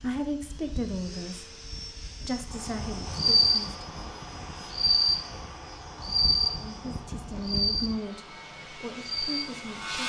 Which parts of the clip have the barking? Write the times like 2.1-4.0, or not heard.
not heard.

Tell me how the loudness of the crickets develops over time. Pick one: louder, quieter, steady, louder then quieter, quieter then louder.
quieter.